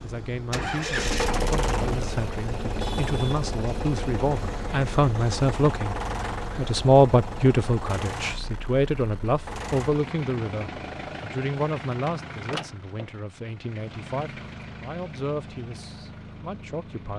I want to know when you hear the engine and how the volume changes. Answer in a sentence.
The engine can be heard from 0.0 to 17.1 s, getting quieter.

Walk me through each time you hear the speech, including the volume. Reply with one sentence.
The speech can be heard from 0.0 to 17.1 s, getting louder then quieter.